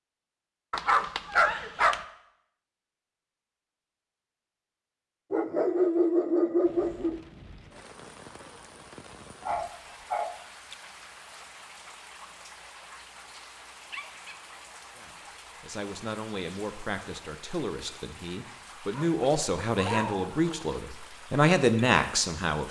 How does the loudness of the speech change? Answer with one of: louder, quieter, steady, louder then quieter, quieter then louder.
louder.